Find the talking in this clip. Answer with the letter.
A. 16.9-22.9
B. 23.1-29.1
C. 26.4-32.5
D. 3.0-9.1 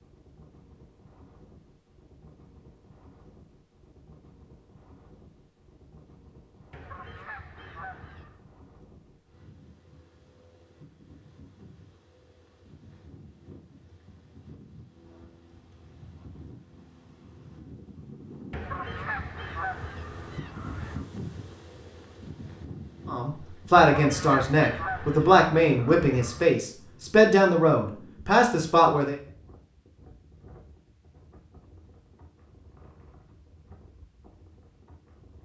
B.